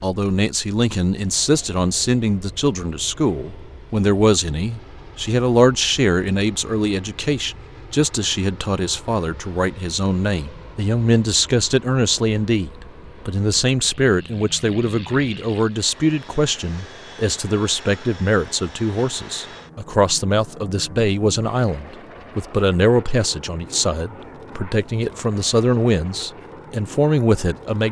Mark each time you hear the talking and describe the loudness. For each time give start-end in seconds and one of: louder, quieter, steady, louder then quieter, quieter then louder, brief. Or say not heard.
0.0-27.8 steady.